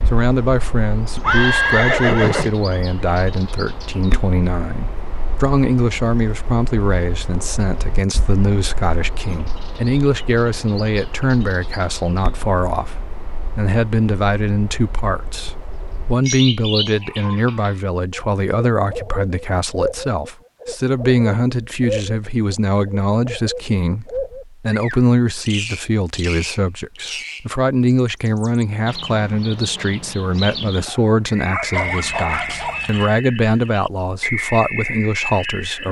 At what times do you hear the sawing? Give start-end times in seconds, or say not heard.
not heard.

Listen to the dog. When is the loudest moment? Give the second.
32 s.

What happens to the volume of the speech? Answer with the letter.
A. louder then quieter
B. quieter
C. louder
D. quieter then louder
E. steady
E.